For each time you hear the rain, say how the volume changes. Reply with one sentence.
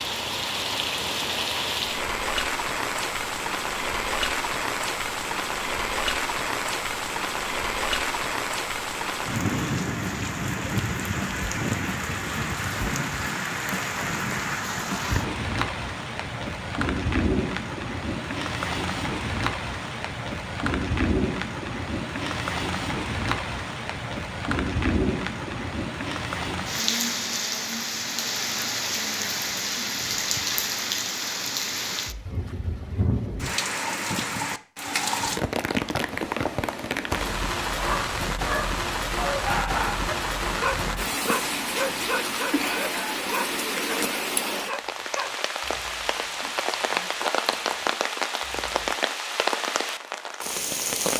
You can hear the rain from 0.0 to 51.1 s, at a steady volume.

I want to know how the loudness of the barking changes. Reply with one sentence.
The loudness of the barking goes down.